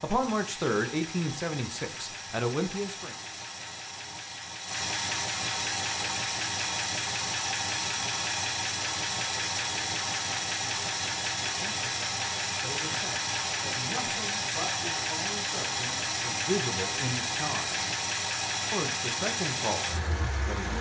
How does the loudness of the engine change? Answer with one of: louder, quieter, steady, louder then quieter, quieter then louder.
louder.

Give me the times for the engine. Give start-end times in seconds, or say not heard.
0.0-20.7.